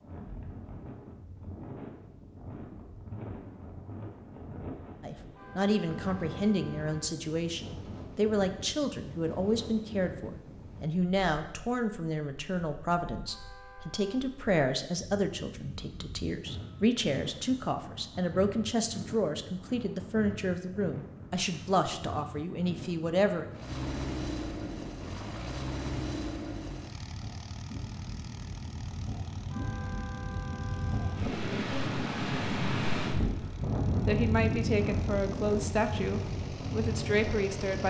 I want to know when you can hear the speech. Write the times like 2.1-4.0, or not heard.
5.0-23.4, 34.0-37.8.